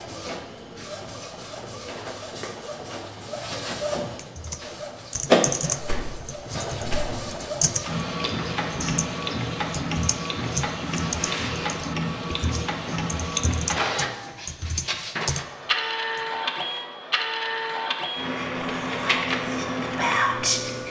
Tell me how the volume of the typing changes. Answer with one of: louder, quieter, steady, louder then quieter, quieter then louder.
steady.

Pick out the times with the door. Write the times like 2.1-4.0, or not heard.
5.8-7.1.